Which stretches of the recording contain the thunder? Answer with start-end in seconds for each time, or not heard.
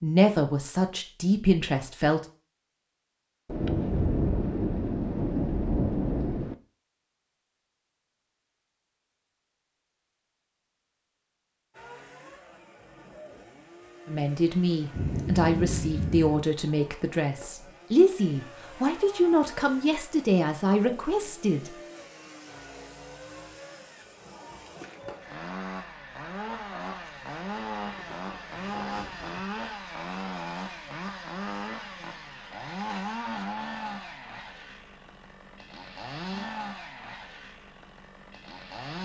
3.5-6.5, 14.9-16.4, 27.8-29.4.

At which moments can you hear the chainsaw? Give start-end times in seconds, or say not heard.
11.7-38.9.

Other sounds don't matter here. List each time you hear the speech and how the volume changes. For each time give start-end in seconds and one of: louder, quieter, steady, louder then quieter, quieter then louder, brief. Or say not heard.
0.0-2.2 brief
14.1-21.8 steady.